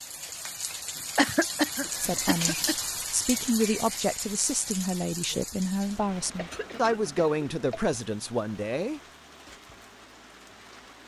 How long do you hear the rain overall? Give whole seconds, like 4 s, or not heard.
11 s.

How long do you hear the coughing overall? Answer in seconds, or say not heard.
3 s.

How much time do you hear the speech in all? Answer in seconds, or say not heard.
7 s.